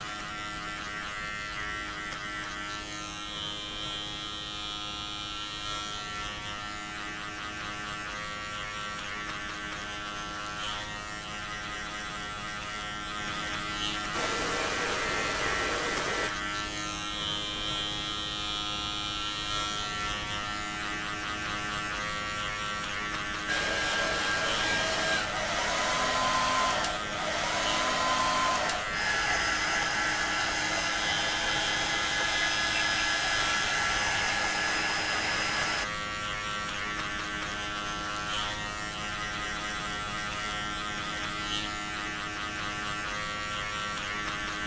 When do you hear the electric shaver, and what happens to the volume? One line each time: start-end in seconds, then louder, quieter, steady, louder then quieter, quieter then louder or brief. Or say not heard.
0.0-44.6 steady.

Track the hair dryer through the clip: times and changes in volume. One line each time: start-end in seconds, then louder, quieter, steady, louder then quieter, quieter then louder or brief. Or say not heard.
14.1-16.3 brief
23.4-35.9 steady.